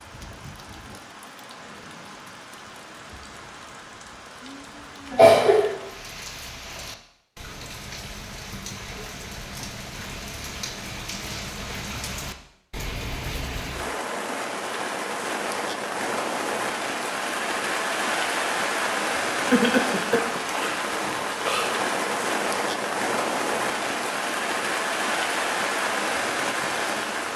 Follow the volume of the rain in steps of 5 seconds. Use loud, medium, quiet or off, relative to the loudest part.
quiet, quiet, medium, loud, loud, loud.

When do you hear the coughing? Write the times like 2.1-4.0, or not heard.
5.1-5.8, 19.5-20.4.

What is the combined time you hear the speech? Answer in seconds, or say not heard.
not heard.